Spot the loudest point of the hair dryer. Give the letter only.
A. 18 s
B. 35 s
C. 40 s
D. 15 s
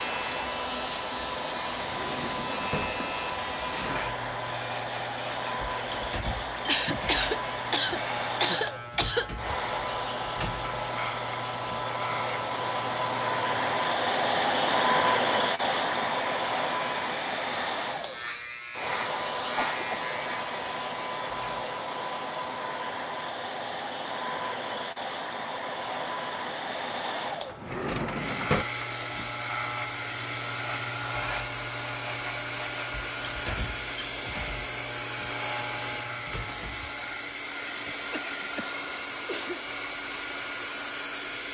D.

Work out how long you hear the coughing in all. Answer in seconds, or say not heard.
5 s.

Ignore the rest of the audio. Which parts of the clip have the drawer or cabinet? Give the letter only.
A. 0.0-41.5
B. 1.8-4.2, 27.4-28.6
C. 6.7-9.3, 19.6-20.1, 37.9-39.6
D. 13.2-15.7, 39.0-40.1
B.